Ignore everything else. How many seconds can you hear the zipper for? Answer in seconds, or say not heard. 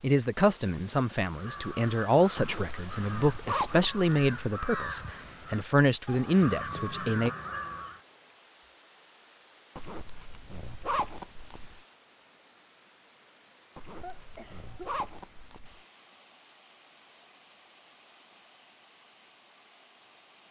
6 s.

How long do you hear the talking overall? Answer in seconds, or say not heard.
7 s.